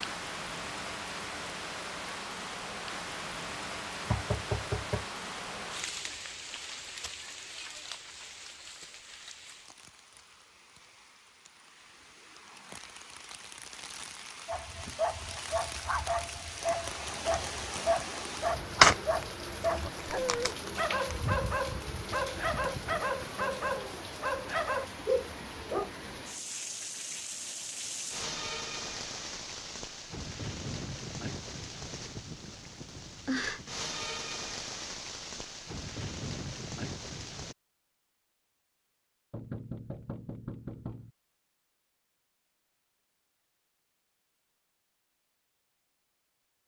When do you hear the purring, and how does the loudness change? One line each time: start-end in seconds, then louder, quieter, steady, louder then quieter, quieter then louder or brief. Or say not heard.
not heard.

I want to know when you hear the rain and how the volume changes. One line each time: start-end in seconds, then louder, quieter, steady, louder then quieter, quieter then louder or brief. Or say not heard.
0.0-37.5 quieter then louder.